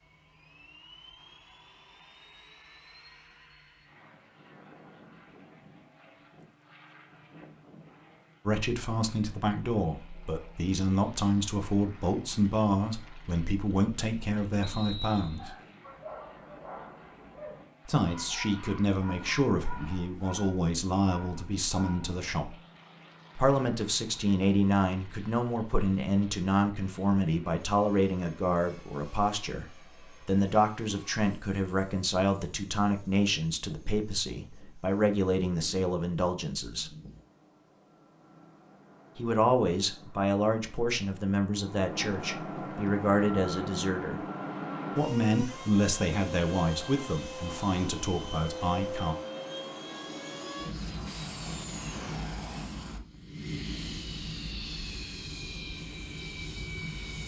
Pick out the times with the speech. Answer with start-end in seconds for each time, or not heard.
8.4-15.6, 17.9-22.6, 23.4-36.9, 39.1-44.2, 45.0-49.1.